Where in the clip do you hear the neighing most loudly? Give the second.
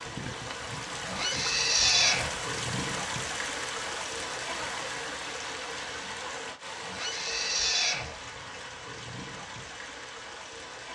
2 s.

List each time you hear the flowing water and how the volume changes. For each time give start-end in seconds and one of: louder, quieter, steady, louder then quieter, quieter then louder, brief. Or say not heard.
0.0-10.9 quieter.